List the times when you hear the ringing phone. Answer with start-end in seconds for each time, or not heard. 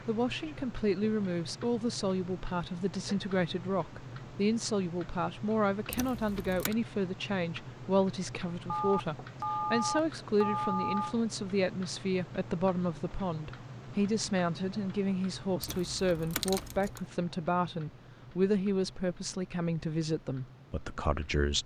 8.7-11.2.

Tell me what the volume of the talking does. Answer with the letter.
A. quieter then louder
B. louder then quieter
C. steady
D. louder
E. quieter
C.